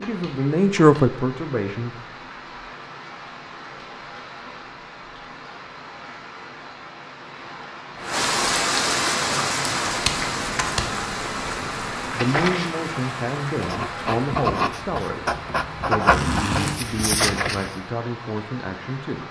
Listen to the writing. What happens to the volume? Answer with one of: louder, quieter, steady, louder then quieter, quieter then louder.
louder.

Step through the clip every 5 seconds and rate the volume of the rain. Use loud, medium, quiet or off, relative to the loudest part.
quiet, loud, loud, medium.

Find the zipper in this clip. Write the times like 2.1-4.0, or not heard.
16.1-16.8.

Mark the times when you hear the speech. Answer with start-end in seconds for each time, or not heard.
0.0-1.9, 11.5-19.2.